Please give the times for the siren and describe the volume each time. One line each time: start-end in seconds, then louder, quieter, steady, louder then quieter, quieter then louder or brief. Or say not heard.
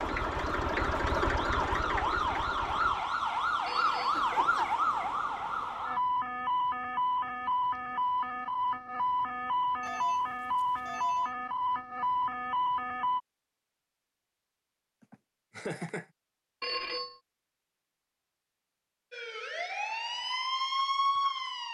0.0-13.2 steady
19.1-21.6 brief.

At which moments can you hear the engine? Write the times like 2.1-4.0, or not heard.
0.0-3.1.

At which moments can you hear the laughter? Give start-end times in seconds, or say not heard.
4.1-4.7, 15.0-16.1.